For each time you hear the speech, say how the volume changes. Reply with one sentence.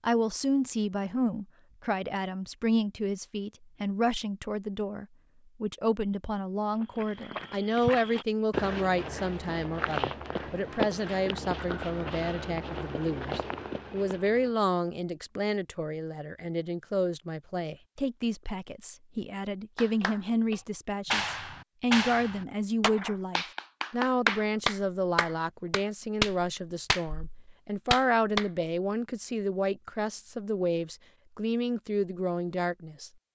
You can hear the speech from 0.0 to 33.1 s, at a steady volume.